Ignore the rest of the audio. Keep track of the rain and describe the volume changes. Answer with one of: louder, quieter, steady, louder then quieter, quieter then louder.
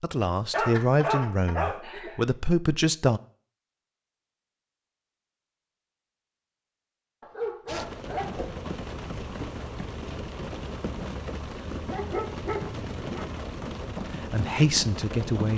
steady.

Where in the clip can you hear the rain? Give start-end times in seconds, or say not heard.
7.7-15.5.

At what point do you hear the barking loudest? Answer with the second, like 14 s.
1 s.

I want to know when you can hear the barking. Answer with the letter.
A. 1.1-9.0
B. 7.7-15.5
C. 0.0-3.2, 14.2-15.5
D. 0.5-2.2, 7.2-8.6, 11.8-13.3
D.